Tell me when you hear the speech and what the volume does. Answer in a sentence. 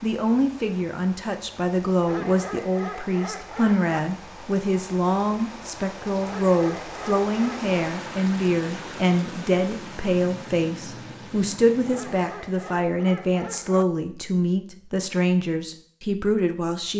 The speech can be heard from 0.0 to 16.9 s, at a steady volume.